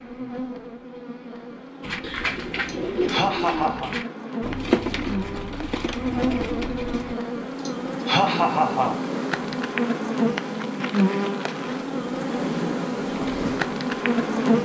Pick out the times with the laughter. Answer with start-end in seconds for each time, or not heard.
2.6-4.0, 7.7-9.0.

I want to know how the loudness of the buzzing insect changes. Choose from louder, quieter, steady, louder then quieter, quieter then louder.
louder.